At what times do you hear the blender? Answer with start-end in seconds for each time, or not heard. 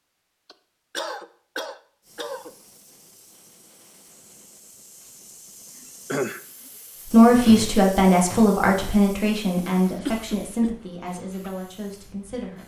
not heard.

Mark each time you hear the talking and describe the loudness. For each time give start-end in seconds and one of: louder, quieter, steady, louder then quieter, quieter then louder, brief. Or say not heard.
7.1-12.6 quieter.